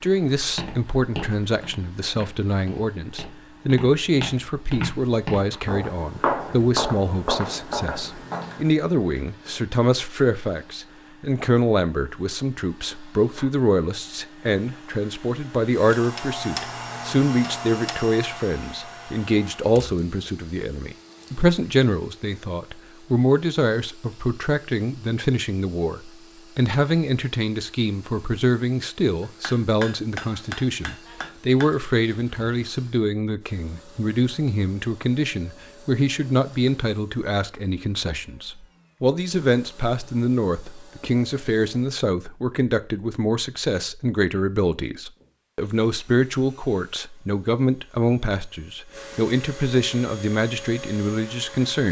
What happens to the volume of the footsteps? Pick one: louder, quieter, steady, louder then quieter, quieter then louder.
quieter then louder.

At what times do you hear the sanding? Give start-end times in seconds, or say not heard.
not heard.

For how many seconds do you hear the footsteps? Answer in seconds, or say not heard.
8 s.